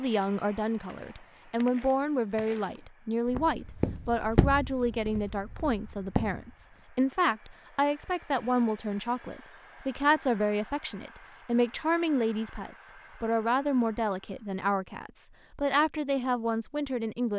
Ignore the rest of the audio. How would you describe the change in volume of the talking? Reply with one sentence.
The volume of the talking stays about the same.